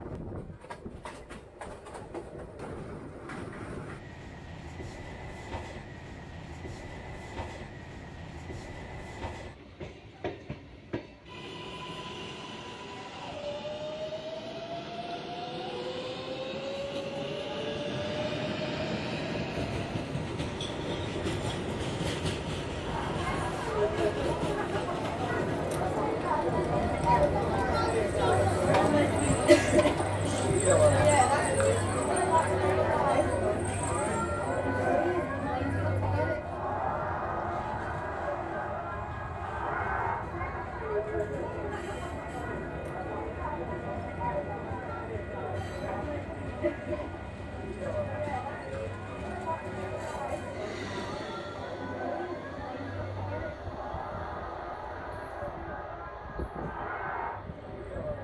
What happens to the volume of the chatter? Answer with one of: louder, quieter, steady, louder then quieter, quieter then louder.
quieter.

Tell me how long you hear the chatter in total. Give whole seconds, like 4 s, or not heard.
35 s.